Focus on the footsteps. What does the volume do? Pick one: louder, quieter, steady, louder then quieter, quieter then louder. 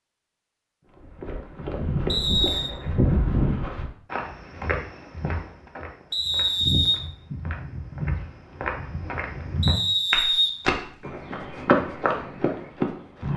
quieter then louder.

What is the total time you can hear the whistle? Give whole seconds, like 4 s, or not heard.
3 s.